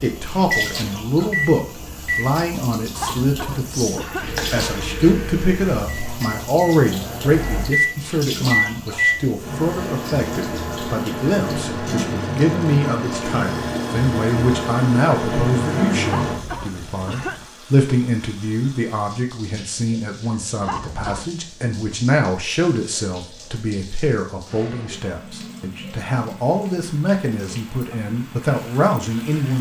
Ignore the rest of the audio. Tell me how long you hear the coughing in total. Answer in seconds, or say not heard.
4 s.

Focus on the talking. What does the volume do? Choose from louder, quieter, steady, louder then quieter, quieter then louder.
steady.